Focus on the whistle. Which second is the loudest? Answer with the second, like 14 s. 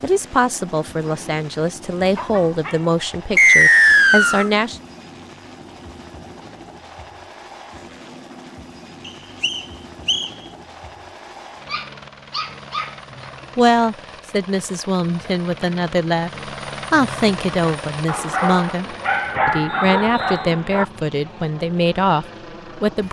4 s.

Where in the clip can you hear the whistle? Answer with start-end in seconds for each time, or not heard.
3.4-4.5, 9.1-10.3, 19.6-20.4.